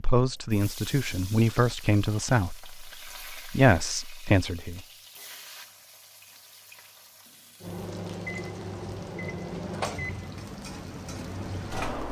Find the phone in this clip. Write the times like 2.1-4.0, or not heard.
not heard.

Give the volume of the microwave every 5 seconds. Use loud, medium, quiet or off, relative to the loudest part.
off, loud, loud.